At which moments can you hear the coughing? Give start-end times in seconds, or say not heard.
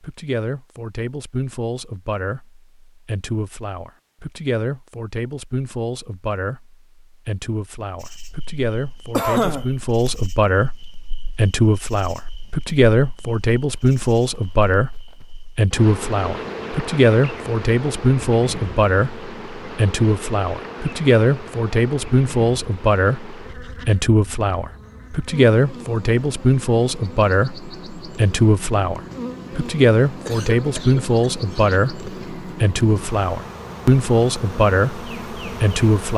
9.1-10.1, 30.2-31.8.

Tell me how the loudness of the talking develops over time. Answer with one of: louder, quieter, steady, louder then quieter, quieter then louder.
louder.